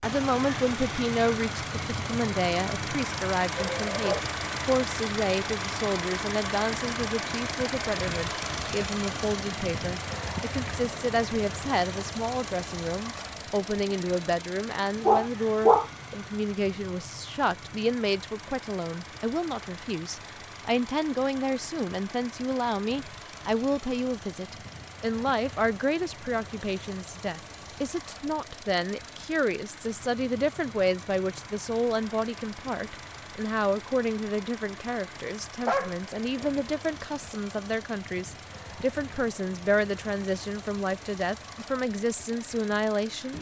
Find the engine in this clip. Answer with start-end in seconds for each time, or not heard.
0.0-43.3.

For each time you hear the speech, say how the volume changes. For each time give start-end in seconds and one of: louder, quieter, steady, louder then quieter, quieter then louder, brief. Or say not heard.
0.0-43.3 steady.